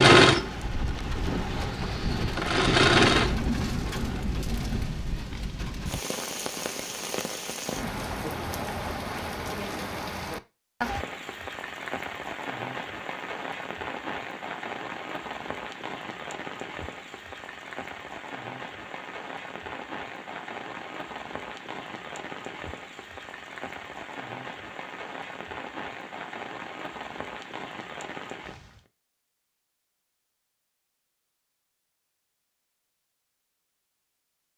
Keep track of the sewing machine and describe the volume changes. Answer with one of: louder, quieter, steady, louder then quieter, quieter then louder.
louder then quieter.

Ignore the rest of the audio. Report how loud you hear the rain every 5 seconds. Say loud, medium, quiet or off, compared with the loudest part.
loud, loud, loud, medium, medium, medium, off.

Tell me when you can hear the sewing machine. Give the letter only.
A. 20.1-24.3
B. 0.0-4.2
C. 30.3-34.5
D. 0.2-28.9
B.